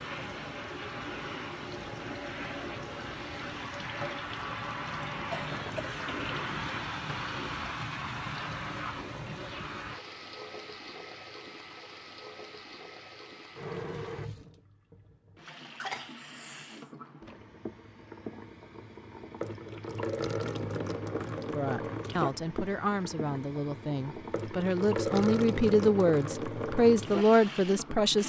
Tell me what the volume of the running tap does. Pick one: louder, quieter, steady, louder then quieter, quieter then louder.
quieter then louder.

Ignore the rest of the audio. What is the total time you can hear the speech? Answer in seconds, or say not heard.
7 s.